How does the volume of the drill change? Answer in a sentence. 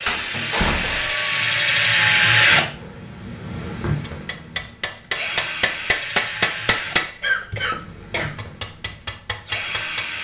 The loudness of the drill goes down.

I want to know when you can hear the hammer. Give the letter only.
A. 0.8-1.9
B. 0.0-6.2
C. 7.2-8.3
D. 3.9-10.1
D.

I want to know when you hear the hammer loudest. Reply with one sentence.
The loudest moment of the hammer is at 6 seconds.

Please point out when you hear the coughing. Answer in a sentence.
The coughing can be heard from 7.2 to 8.3 s.